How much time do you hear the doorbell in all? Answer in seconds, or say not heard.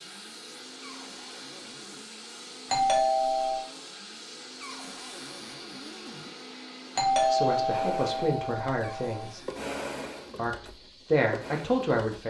3 s.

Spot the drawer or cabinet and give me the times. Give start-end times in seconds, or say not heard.
0.8-2.0, 4.6-6.3, 8.8-10.6.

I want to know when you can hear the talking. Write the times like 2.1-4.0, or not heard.
7.3-9.4, 10.3-12.2.